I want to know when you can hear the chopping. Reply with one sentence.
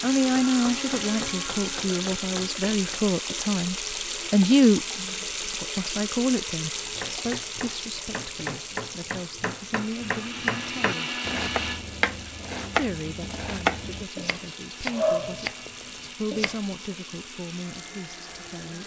The chopping can be heard from 0.0 to 3.0 s and from 6.8 to 16.6 s.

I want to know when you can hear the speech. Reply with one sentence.
The speech can be heard from 0.0 to 11.1 s, from 12.8 to 15.5 s and from 16.1 to 18.8 s.